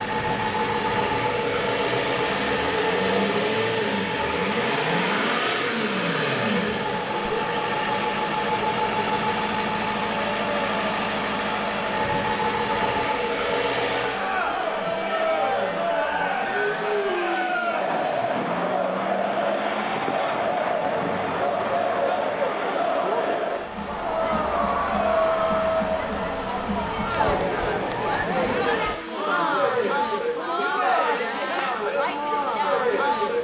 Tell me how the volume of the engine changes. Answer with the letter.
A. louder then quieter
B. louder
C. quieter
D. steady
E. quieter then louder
C.